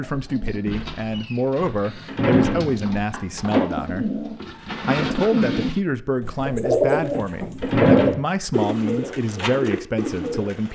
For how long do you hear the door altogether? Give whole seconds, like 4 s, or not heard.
3 s.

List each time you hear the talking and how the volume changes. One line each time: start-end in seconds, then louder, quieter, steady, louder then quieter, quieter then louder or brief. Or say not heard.
0.0-10.7 steady.